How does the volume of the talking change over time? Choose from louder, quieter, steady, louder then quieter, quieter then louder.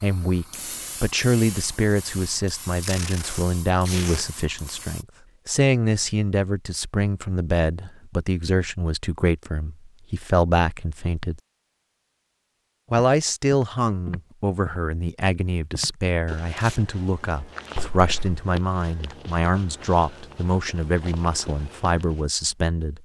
steady.